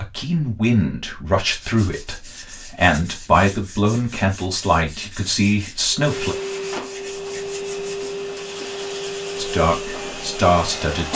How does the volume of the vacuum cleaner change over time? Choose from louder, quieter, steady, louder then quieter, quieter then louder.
steady.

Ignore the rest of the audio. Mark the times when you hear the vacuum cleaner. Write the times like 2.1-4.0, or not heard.
5.9-11.0.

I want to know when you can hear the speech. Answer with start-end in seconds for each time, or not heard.
0.0-6.3, 9.3-11.0.